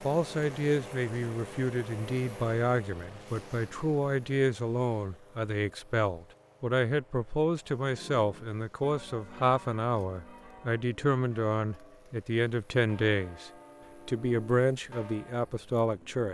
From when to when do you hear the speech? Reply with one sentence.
The speech can be heard from 0.0 to 16.2 s.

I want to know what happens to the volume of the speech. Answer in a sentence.
The loudness of the speech stays about the same.